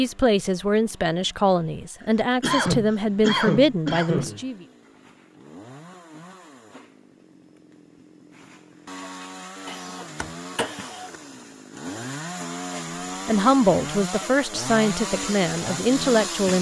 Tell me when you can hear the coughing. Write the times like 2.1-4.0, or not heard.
2.4-4.4, 9.7-11.2.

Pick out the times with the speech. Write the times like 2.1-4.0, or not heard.
0.0-4.7, 13.2-16.5.